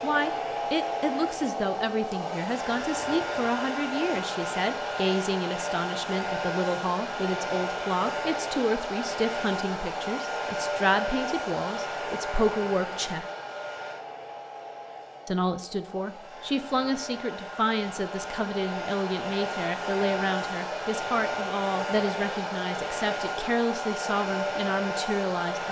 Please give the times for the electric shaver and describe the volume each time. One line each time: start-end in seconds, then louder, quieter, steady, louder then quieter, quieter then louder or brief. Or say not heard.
not heard.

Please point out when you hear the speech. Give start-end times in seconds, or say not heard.
0.0-13.2, 15.2-25.6.